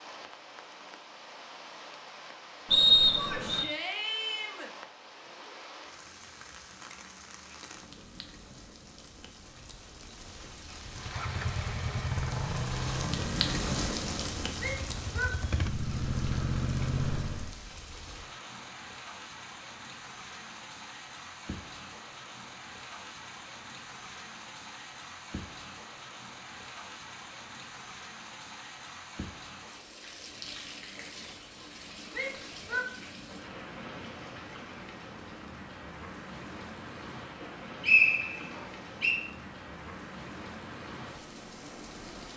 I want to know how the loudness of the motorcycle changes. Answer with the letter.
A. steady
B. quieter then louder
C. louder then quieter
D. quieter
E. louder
B.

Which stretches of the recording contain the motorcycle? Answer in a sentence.
You can hear the motorcycle from 10.8 to 17.6 s.